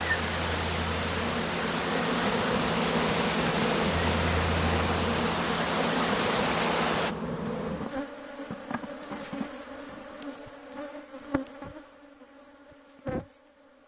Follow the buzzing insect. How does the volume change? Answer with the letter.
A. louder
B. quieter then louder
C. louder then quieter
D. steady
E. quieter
E.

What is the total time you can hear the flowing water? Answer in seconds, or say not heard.
7 s.